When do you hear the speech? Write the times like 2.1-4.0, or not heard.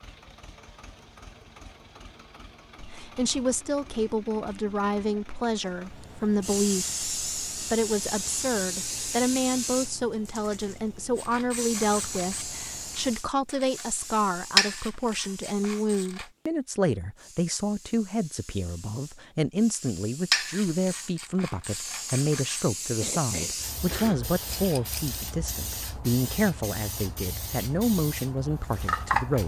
2.8-29.4.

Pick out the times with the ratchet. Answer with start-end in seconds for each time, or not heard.
11.2-16.3, 20.3-22.6.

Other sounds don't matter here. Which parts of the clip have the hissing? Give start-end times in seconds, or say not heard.
6.3-29.4.